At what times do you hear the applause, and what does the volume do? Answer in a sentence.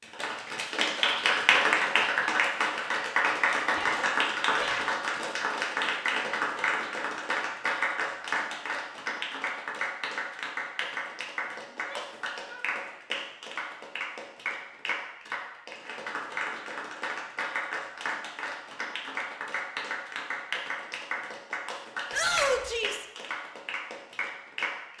You can hear the applause from 0.0 to 24.9 s, getting quieter.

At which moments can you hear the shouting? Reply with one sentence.
The shouting can be heard from 3.7 to 5.0 s, from 11.7 to 12.7 s and from 22.1 to 23.1 s.